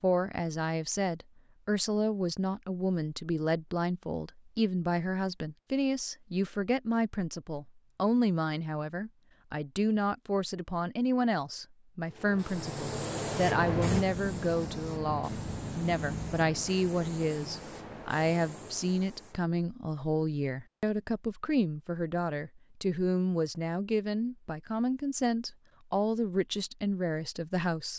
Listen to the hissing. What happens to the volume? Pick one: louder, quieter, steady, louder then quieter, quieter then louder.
quieter.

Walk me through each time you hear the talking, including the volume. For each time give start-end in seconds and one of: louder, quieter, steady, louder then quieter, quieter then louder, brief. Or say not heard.
0.0-27.9 steady.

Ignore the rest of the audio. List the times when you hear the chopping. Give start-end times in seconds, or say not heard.
not heard.